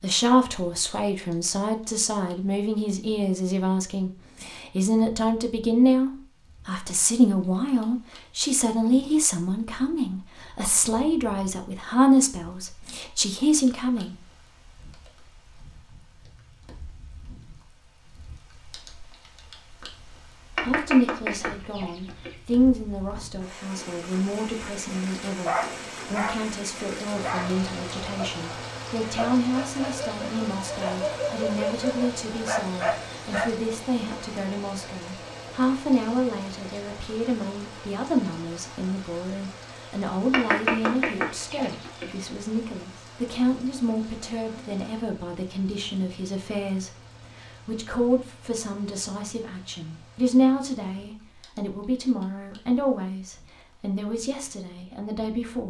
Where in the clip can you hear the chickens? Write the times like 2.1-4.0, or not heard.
20.6-22.4, 40.3-42.1.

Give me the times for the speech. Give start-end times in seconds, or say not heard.
0.0-14.2, 20.6-55.6.